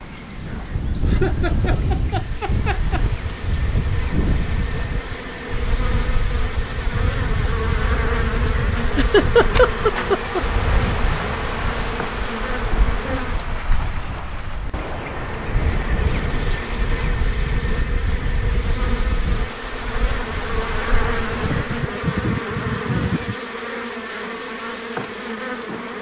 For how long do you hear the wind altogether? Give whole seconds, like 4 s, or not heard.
22 s.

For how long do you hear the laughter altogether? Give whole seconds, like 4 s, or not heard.
6 s.